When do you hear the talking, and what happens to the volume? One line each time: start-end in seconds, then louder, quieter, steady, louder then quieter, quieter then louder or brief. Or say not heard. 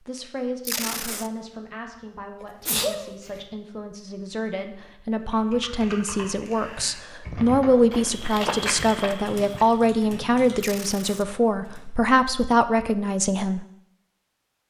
0.1-13.7 louder.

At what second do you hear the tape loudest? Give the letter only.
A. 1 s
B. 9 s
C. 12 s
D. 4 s
A.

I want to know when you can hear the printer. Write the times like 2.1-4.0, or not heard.
not heard.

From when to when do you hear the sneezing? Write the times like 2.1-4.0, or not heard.
2.4-3.4.